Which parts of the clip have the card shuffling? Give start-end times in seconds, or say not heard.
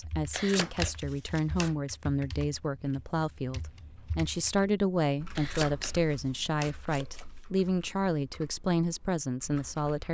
0.3-1.7, 5.3-7.2.